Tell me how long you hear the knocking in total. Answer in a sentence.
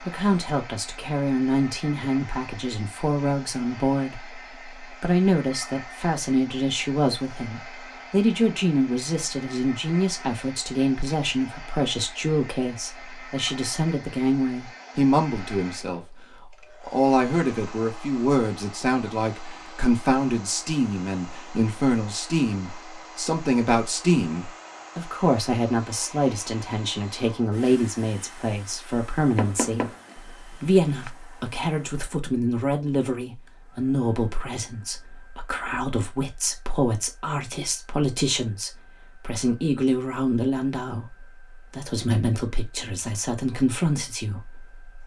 The knocking can be heard for 2 seconds in total.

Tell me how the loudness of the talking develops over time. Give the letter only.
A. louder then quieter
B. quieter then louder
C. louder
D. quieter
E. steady
E.